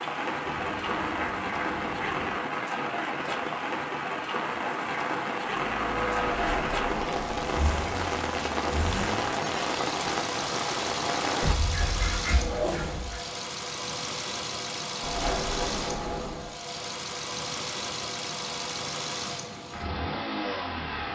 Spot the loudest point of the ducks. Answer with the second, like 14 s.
13 s.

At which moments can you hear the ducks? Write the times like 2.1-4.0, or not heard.
0.5-2.4, 11.4-13.2.